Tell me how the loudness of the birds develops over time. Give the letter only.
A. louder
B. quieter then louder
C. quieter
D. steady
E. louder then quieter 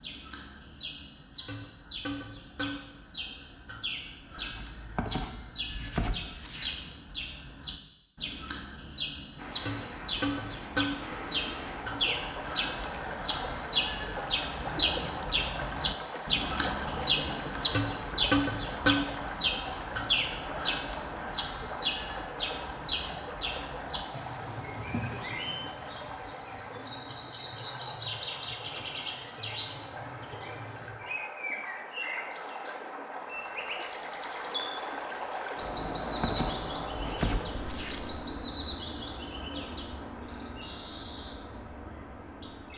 E.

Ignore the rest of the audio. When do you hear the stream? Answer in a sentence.
The stream can be heard from 9.3 to 42.7 s.